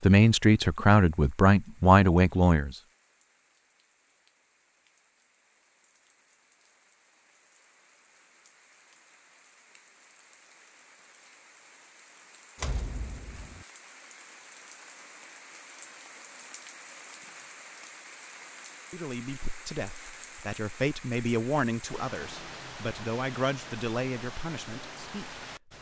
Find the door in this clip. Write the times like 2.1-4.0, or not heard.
12.6-13.7.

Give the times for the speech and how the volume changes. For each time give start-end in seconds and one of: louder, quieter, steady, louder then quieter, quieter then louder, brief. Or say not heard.
0.0-2.8 brief
18.9-25.4 louder then quieter.